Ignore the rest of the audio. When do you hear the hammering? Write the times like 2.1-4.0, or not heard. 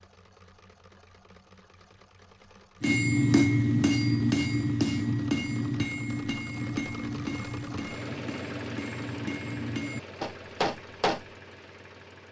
2.8-11.2.